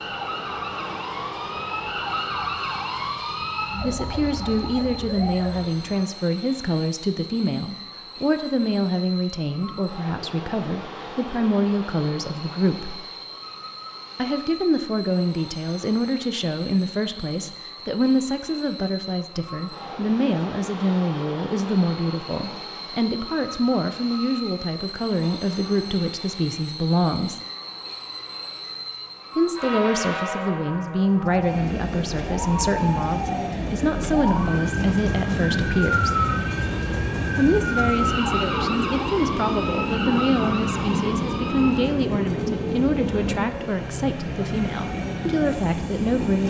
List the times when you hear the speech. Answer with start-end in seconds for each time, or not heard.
3.8-12.9, 14.2-27.4, 29.4-36.2, 37.4-46.4.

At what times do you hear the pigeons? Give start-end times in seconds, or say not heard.
not heard.